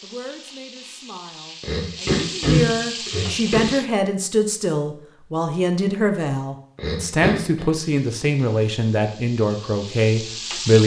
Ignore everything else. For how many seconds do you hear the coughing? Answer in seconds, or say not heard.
3 s.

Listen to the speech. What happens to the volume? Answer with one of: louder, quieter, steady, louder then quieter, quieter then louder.
louder.